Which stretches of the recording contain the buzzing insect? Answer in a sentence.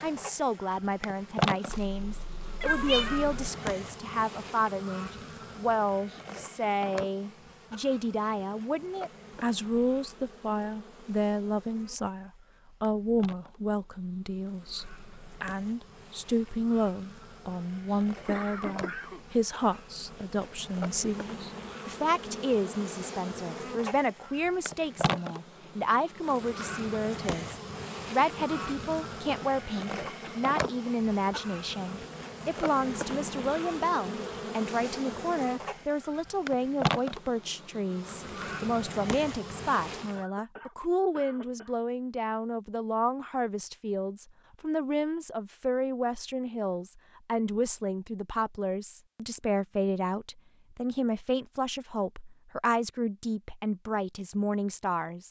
The buzzing insect can be heard from 0.0 to 40.2 s.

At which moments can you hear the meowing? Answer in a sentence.
The meowing can be heard from 1.6 to 3.2 s.